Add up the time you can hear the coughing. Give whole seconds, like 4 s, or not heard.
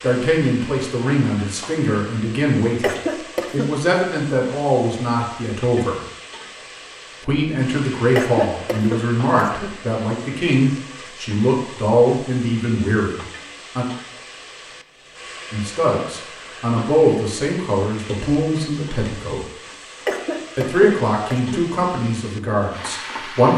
4 s.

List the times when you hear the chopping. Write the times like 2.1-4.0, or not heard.
not heard.